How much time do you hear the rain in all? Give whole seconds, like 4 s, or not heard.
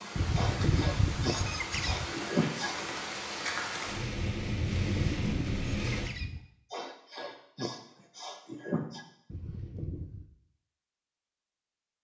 6 s.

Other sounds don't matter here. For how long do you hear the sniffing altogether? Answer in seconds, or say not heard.
5 s.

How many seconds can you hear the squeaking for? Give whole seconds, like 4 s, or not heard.
5 s.